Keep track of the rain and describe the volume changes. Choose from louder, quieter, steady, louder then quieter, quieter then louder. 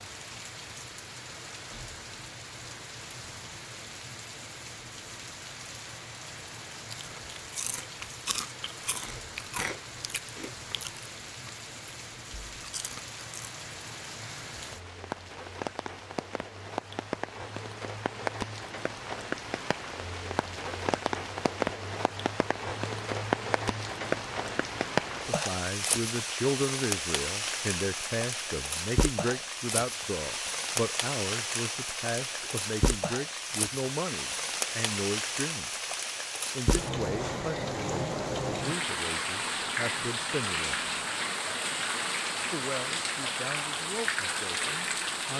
louder.